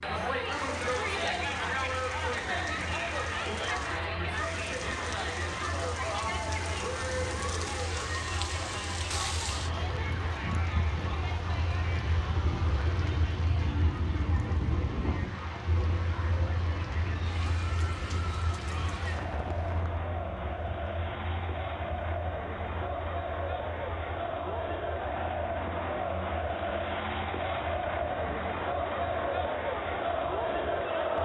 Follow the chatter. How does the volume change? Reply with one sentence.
The volume of the chatter goes down, then up.